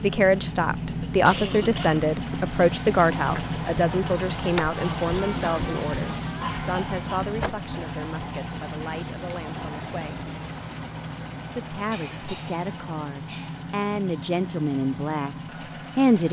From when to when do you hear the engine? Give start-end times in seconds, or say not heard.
0.0-16.2.